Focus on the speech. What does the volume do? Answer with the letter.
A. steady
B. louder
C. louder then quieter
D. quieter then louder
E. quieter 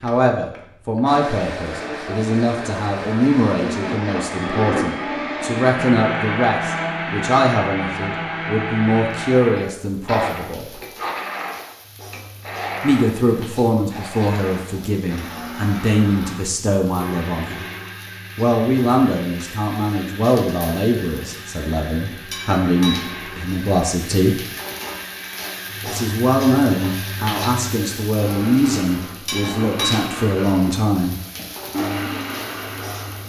A.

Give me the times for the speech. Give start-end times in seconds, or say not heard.
0.0-10.8, 12.8-17.6, 18.4-24.4, 25.9-31.2.